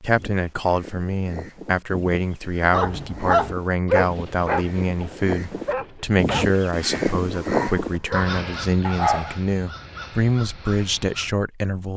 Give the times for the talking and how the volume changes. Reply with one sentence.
You can hear the talking from 0.0 to 11.9 s, at a steady volume.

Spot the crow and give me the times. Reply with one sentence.
You can hear the crow from 0.1 to 11.3 s.